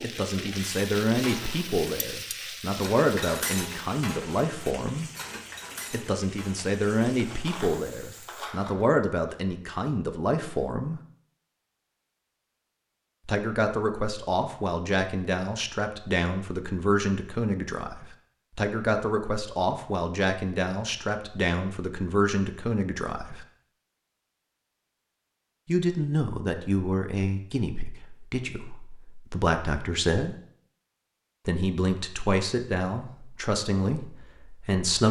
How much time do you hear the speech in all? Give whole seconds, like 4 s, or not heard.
29 s.